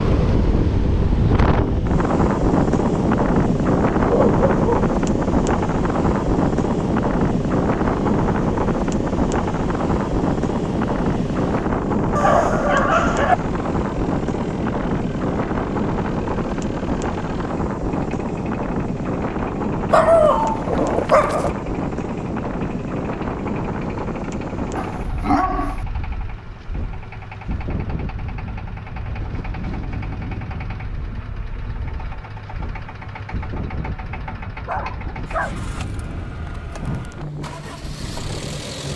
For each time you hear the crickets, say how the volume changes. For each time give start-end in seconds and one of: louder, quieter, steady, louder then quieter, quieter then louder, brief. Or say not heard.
not heard.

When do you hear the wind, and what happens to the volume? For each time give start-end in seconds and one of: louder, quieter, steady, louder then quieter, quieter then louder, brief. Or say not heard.
0.0-38.9 quieter.